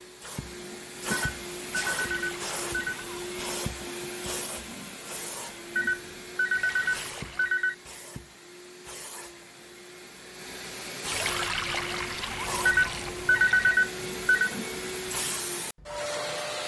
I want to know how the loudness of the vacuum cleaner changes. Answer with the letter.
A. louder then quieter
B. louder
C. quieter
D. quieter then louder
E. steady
D.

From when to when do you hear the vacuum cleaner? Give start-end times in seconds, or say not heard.
0.0-16.6.